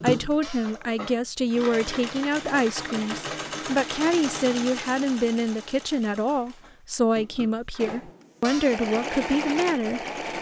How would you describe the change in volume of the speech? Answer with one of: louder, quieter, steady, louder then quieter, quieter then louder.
steady.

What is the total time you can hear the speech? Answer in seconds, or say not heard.
10 s.